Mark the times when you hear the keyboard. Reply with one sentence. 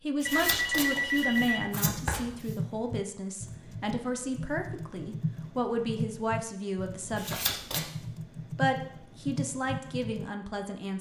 You can hear the keyboard from 1.3 to 10.3 s.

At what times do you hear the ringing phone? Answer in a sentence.
You can hear the ringing phone from 0.2 to 1.7 s.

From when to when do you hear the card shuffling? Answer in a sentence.
You can hear the card shuffling from 0.2 to 2.5 s and from 7.2 to 7.8 s.